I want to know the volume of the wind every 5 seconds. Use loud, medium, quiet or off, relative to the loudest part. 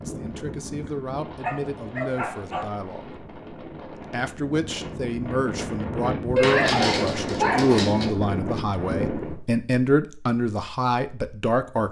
medium, loud, off.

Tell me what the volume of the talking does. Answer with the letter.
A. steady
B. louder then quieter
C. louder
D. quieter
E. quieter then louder
C.